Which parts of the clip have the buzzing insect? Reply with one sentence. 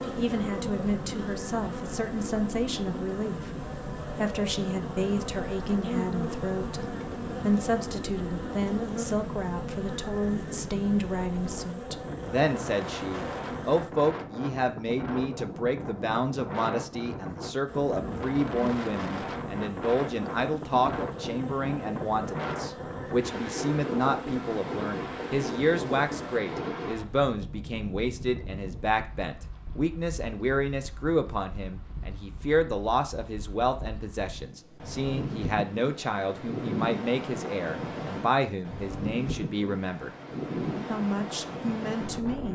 You can hear the buzzing insect from 0.0 to 13.9 s and from 17.6 to 26.4 s.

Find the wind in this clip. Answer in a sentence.
You can hear the wind from 0.0 to 42.5 s.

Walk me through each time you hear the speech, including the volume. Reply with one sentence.
The speech can be heard from 0.1 to 40.1 s, at a steady volume; and briefly from 40.9 to 42.5 s.